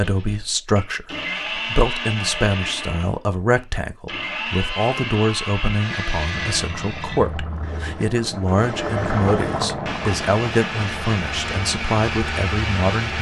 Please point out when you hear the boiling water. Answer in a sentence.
You can hear the boiling water from 6.3 to 13.1 s.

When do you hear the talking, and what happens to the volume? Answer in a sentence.
You can hear the talking from 0.0 to 13.1 s, at a steady volume.